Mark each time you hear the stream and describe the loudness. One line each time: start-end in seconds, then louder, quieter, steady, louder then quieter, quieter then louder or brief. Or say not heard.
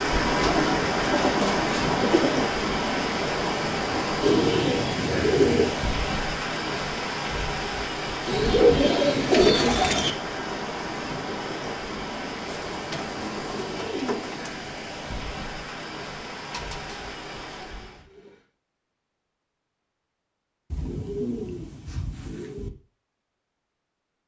0.0-18.1 quieter.